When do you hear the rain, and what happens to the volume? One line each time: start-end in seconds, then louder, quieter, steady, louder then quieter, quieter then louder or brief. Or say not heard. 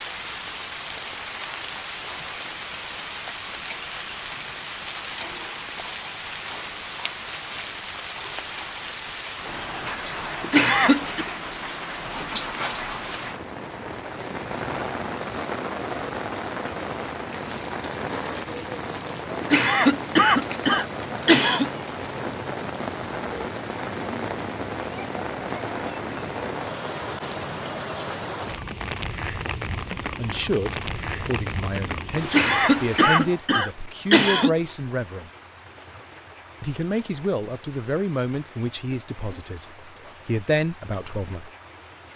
0.0-42.1 quieter.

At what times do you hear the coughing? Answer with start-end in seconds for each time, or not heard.
10.4-11.2, 19.4-21.6, 32.2-34.5.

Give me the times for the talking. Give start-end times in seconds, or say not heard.
29.8-35.3, 36.6-41.5.